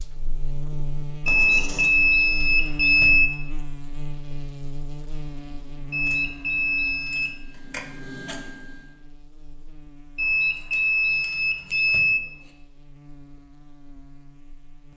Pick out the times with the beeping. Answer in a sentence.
The beeping can be heard from 1.2 to 3.2 s, from 5.9 to 7.3 s and from 10.2 to 12.2 s.